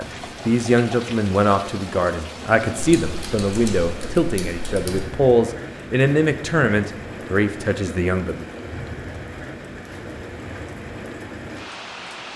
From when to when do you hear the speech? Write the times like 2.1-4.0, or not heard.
0.0-8.4.